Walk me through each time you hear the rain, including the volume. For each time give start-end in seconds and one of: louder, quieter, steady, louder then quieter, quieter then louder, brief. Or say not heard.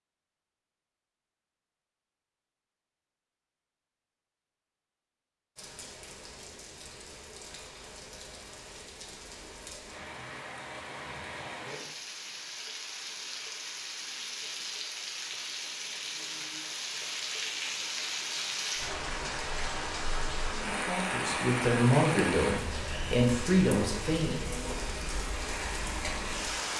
5.5-26.7 louder.